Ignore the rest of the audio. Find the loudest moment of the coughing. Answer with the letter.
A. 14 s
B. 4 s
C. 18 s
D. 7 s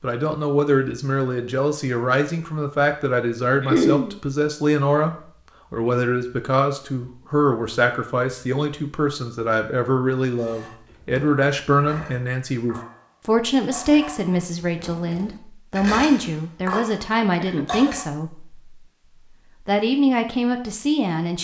B.